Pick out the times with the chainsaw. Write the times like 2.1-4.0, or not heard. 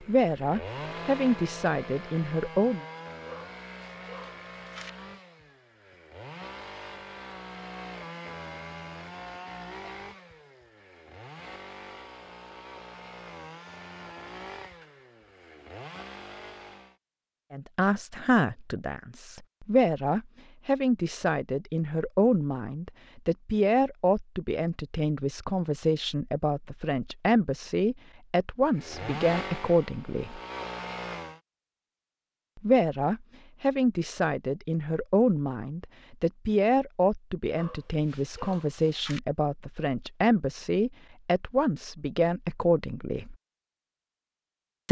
0.0-16.9, 28.7-31.4.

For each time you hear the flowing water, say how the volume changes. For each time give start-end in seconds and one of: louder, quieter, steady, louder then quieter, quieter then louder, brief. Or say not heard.
not heard.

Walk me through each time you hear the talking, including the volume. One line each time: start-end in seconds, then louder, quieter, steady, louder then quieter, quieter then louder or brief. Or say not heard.
0.1-2.9 brief
17.5-30.4 steady
32.5-43.4 steady.